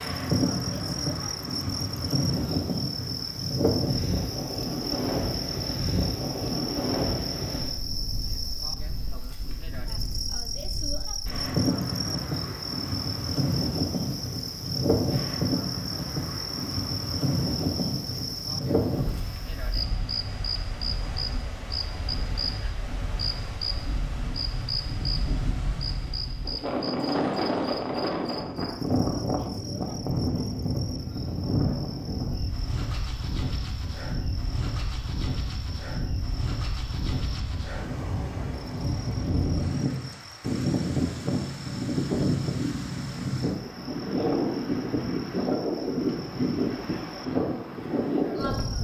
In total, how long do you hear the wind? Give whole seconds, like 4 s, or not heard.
49 s.